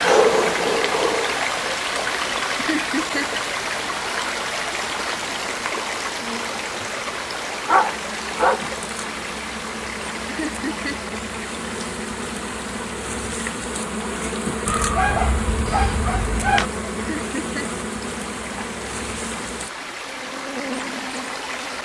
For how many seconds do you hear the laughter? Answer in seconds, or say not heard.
2 s.